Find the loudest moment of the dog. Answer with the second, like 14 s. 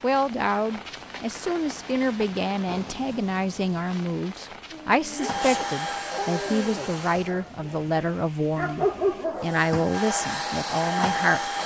9 s.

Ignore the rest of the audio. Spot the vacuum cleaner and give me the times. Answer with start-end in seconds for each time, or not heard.
5.2-7.3, 9.3-11.6.